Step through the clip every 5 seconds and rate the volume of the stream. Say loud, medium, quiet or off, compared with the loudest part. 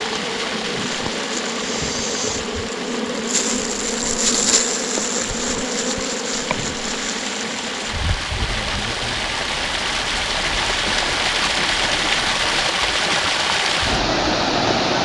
medium, medium, loud.